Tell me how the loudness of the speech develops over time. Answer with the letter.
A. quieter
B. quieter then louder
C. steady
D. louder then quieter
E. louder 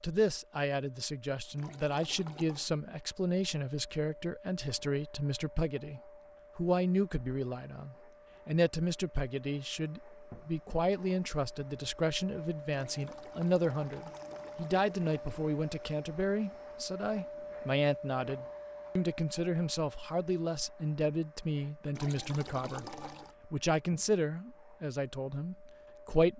C.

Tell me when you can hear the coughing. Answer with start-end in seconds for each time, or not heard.
not heard.